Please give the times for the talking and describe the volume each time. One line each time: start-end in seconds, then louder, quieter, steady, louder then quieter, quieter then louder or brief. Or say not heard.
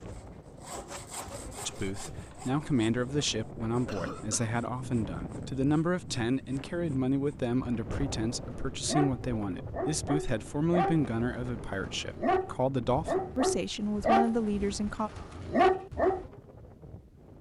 1.6-15.1 steady.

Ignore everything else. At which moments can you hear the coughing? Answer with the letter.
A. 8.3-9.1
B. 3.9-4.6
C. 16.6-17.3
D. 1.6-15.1
B.